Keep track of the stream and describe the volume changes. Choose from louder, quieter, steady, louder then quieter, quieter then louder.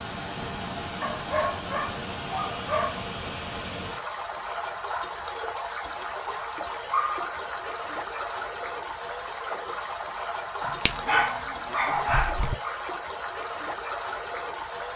steady.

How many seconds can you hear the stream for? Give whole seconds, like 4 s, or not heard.
15 s.